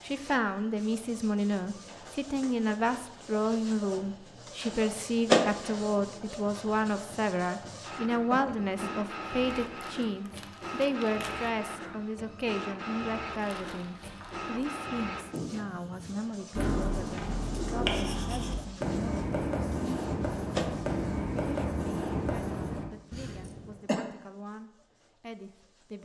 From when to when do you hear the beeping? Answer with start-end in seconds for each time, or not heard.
not heard.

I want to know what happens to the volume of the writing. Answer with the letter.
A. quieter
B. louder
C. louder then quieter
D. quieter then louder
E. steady
E.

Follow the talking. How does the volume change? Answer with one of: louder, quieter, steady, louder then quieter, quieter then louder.
quieter.